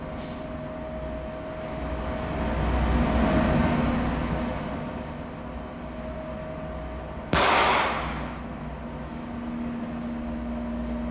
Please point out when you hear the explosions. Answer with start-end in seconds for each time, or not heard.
7.3-8.4.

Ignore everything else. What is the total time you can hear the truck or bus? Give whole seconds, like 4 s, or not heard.
11 s.